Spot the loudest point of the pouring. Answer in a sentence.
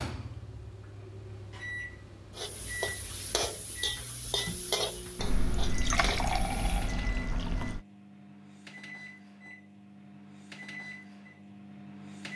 The loudest moment of the pouring is at 6 seconds.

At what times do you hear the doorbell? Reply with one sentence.
The doorbell can't be heard in this clip.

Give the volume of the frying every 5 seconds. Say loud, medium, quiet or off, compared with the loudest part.
loud, medium, off.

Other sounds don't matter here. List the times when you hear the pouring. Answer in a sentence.
You can hear the pouring from 5.2 to 7.8 s.